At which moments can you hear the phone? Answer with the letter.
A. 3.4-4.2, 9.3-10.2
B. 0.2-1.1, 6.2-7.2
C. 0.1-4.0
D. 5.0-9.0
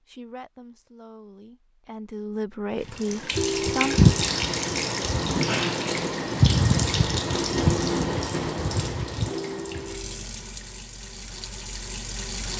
A.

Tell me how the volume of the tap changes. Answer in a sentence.
The loudness of the tap goes down.